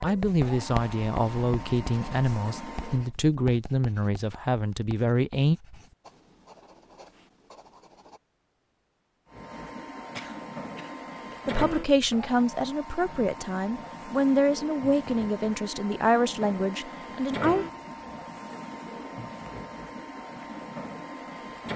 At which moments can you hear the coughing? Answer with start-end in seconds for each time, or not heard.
10.1-11.4.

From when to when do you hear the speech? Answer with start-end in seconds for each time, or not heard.
0.0-5.6, 11.4-17.6.